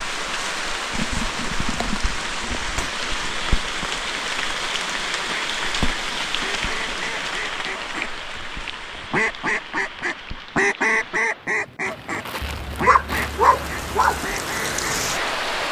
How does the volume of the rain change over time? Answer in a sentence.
The volume of the rain goes down, then up.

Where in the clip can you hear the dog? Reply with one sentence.
You can hear the dog from 12.4 to 14.2 s.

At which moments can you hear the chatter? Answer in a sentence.
The chatter can't be heard in this clip.